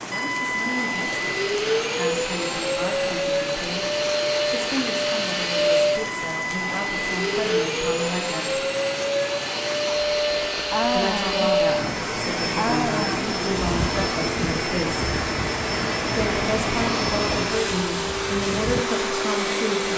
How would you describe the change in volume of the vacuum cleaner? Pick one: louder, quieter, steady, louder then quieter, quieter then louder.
steady.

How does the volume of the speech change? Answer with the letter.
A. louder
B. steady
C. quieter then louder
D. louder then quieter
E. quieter
A.